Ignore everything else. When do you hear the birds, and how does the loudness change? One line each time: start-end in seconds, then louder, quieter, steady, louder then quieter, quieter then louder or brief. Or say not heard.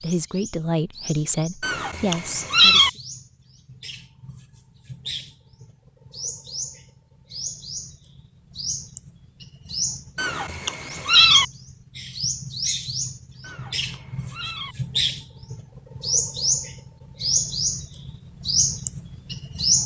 0.0-19.8 louder.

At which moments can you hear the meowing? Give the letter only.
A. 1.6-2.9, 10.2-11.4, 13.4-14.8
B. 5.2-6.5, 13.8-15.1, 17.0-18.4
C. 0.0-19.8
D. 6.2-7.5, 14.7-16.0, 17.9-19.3
A.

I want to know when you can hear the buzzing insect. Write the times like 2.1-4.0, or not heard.
not heard.